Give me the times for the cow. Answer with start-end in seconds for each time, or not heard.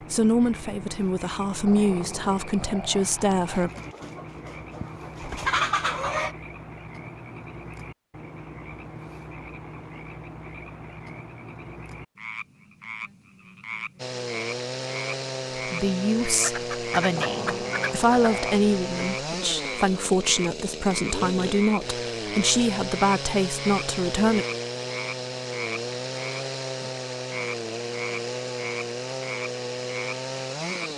not heard.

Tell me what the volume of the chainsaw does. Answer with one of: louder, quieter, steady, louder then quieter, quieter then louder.
steady.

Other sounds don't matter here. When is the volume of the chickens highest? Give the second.
6 s.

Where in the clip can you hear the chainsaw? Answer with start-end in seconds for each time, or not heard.
13.9-30.9.